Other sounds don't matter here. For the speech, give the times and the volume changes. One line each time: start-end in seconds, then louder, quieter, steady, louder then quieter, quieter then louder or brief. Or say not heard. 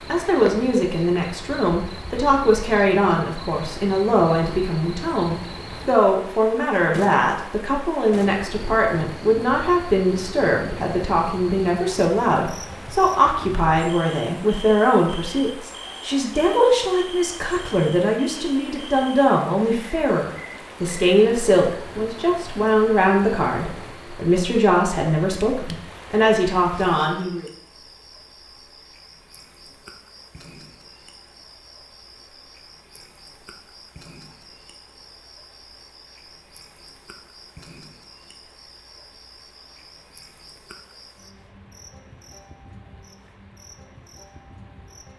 0.1-27.4 steady.